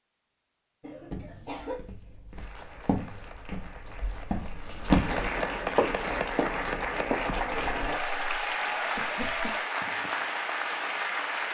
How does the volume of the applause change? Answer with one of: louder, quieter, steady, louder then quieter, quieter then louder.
louder.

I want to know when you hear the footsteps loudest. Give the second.
5 s.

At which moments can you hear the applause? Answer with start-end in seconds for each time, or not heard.
2.4-11.4.